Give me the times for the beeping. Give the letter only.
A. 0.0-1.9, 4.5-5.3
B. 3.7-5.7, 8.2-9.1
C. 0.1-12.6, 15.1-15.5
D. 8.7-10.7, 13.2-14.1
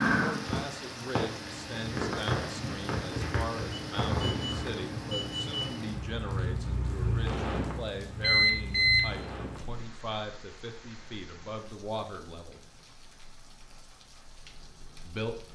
B.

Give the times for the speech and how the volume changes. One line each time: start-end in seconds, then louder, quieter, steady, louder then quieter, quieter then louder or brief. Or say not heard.
0.1-12.6 steady
15.1-15.5 brief.